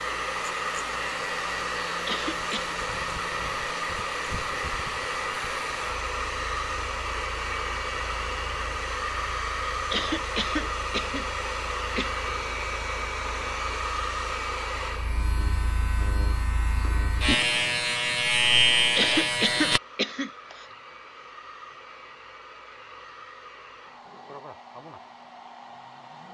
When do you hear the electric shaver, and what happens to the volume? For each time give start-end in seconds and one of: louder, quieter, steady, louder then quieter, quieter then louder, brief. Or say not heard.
0.0-19.8 quieter then louder.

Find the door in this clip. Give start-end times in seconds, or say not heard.
not heard.